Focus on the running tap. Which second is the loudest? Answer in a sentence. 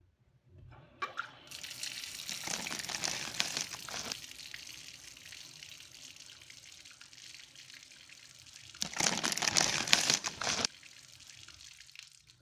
The loudest moment of the running tap is at 2 seconds.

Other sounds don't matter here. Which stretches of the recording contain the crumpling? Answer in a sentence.
You can hear the crumpling from 2.2 to 4.2 s and from 8.8 to 10.7 s.